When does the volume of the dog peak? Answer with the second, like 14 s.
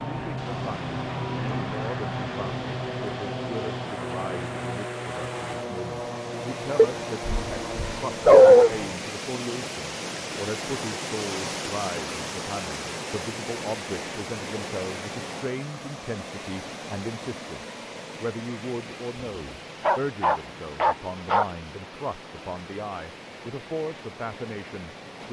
8 s.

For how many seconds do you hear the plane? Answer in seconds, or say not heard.
9 s.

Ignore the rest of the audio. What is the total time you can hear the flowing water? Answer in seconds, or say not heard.
25 s.